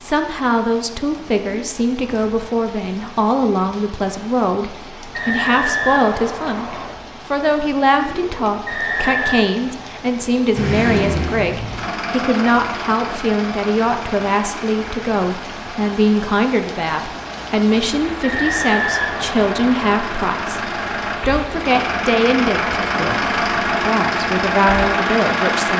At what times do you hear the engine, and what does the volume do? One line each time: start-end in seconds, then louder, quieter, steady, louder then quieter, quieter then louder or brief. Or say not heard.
10.5-25.7 quieter then louder.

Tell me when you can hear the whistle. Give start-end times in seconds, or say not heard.
5.1-6.9, 8.7-9.4, 18.2-19.9.